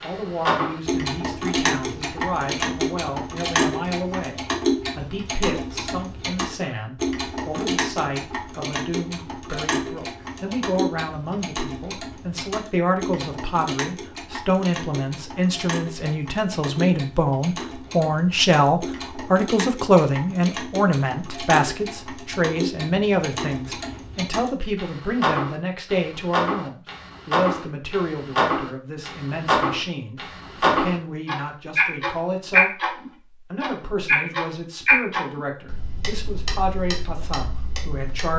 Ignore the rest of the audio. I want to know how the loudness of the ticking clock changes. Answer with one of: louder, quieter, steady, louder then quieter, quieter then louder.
quieter then louder.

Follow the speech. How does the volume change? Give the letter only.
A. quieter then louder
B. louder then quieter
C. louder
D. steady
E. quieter
B.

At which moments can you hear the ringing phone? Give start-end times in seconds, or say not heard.
not heard.